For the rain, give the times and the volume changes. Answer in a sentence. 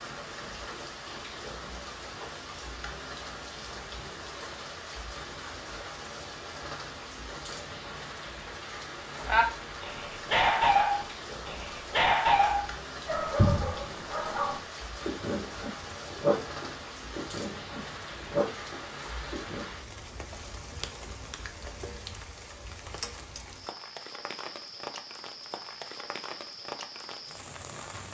You can hear the rain from 0.0 to 28.0 s, at a steady volume.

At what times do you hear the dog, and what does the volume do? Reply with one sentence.
The dog can be heard from 9.2 to 19.6 s, getting quieter.